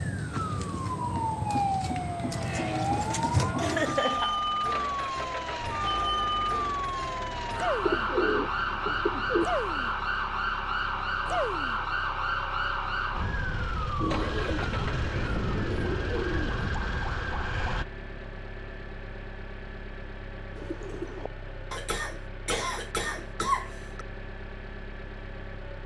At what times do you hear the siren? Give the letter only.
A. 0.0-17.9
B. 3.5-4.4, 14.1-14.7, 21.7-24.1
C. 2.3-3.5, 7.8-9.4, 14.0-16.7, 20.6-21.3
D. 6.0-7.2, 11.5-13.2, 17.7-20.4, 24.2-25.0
A.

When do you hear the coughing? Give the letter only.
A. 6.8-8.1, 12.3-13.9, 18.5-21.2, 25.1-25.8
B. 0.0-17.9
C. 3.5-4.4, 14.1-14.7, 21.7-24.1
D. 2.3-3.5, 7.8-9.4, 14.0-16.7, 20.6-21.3
C.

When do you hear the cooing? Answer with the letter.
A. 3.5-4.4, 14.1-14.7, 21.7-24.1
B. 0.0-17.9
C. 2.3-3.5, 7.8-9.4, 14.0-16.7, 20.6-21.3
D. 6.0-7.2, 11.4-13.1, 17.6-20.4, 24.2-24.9
C.